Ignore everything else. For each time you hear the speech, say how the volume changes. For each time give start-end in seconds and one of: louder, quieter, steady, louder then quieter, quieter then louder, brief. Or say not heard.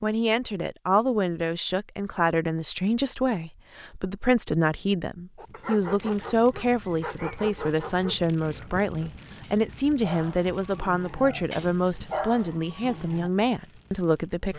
0.0-14.5 steady.